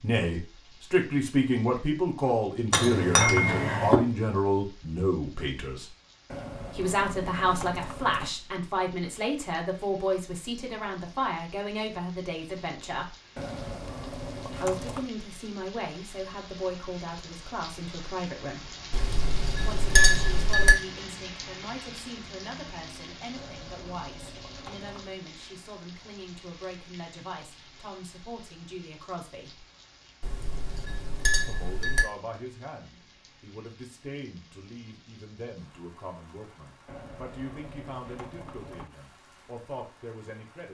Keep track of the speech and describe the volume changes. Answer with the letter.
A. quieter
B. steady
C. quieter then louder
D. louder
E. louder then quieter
A.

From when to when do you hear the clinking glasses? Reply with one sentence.
You can hear the clinking glasses from 2.7 to 4.0 s, from 18.9 to 20.8 s and from 30.2 to 32.0 s.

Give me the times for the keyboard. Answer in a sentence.
You can hear the keyboard from 6.2 to 8.3 s, from 13.3 to 15.1 s, from 23.4 to 25.1 s and from 36.9 to 38.9 s.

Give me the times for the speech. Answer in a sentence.
You can hear the speech from 0.0 to 5.8 s, from 6.7 to 13.2 s, from 14.5 to 18.8 s, from 19.6 to 29.6 s and from 31.4 to 40.6 s.